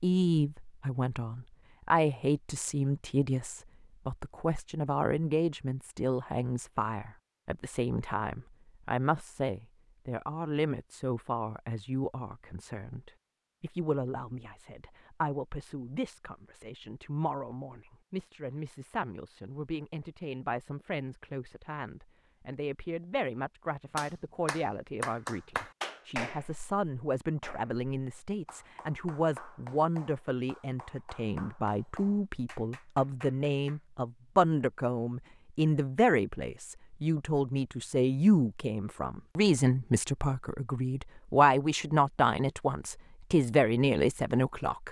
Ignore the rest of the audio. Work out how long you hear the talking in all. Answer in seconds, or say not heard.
45 s.